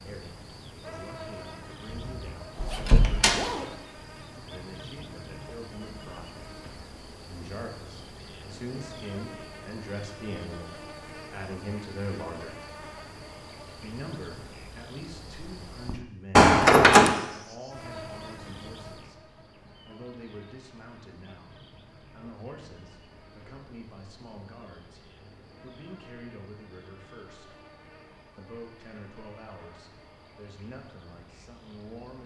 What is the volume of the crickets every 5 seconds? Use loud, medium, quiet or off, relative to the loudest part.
loud, loud, loud, loud, medium, medium, medium.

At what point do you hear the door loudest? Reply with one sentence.
The volume of the door peaks at 17 seconds.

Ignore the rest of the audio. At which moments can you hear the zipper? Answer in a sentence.
You can hear the zipper from 2.5 to 3.8 s.